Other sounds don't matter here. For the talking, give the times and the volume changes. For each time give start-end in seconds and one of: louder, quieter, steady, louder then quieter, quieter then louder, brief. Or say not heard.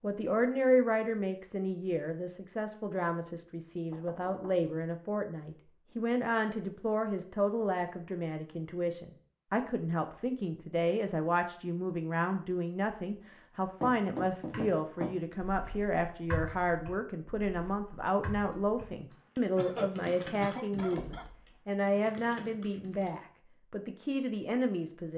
0.0-25.1 steady.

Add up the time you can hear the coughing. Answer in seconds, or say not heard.
2 s.